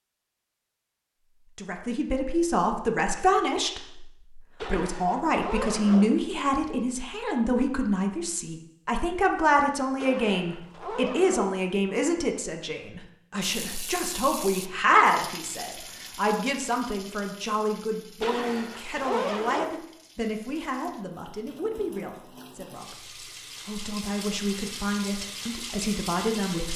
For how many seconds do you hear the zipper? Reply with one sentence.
You can hear the zipper for 5 seconds altogether.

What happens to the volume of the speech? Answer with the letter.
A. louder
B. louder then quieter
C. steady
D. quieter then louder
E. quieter
E.